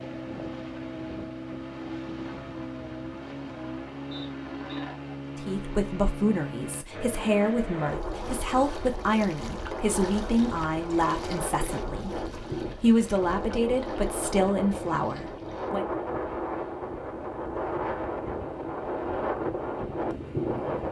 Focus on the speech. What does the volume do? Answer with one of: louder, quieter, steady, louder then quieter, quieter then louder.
steady.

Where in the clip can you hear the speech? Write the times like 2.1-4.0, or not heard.
5.3-15.8.